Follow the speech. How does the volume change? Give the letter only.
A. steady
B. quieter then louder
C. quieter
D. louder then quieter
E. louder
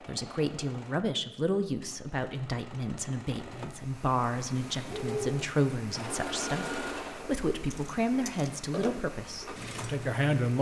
A.